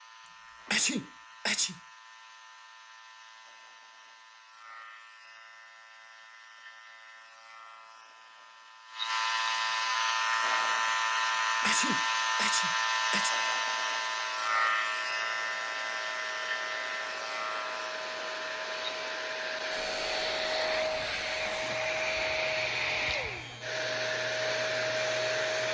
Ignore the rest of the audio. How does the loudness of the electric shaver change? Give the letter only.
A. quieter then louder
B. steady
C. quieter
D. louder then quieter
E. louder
D.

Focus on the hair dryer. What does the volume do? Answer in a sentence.
The volume of the hair dryer goes up.